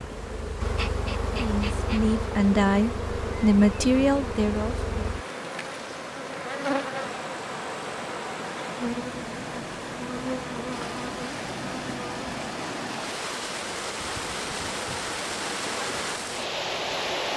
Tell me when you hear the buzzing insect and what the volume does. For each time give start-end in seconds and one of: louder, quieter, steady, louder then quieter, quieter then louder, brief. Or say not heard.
0.0-17.1 quieter.